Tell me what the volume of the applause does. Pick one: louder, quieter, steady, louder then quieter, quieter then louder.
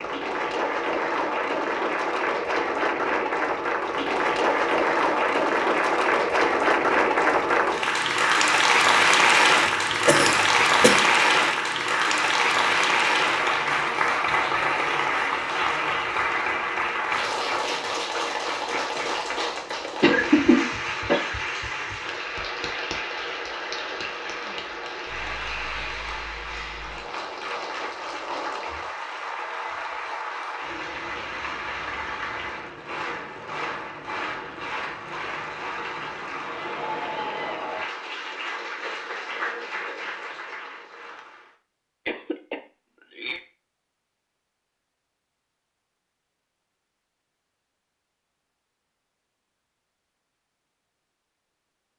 quieter.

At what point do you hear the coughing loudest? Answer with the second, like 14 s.
20 s.